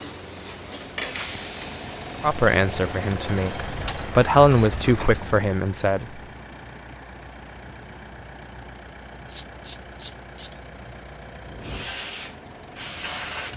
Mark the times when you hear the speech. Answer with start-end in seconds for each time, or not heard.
2.2-6.2.